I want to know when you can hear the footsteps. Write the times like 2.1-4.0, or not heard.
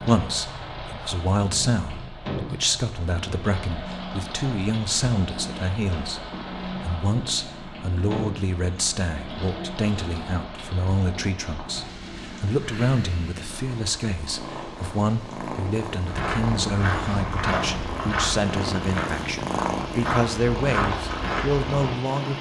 16.1-21.8.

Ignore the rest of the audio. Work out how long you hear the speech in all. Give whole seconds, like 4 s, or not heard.
22 s.